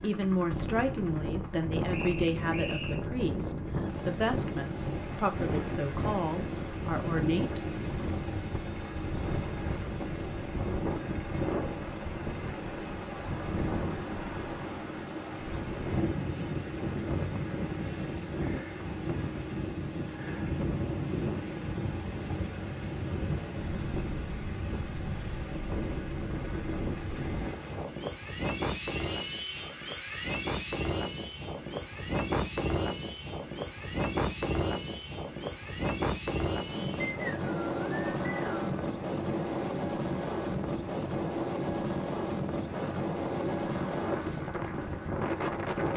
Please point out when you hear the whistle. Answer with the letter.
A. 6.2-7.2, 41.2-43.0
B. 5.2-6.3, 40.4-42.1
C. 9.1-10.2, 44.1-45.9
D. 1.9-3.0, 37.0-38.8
D.